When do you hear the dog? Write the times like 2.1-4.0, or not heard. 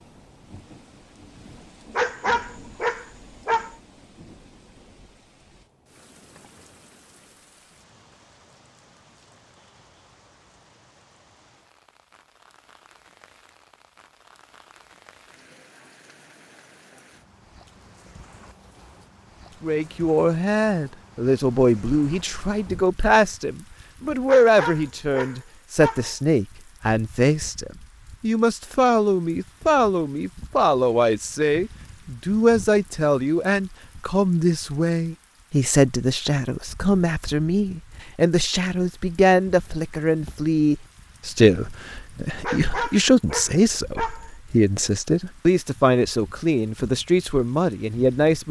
1.9-3.7, 24.2-26.1, 42.4-44.3.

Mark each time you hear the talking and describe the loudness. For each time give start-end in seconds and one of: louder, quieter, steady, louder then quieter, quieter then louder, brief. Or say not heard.
19.6-48.4 steady.